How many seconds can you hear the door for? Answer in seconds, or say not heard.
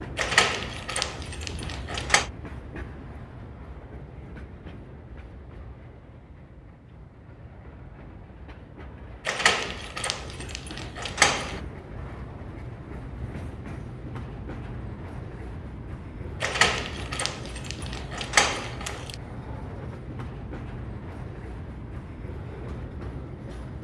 7 s.